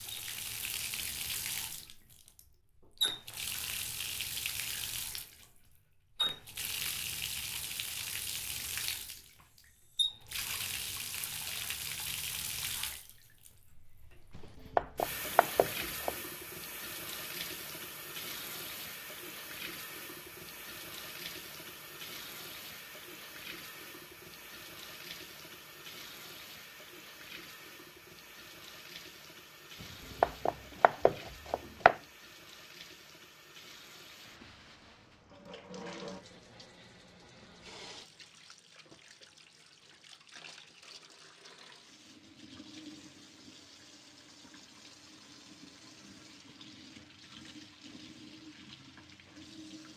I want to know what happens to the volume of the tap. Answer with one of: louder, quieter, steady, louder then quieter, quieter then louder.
quieter.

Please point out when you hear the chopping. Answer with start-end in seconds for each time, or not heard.
14.3-16.1, 30.2-31.9.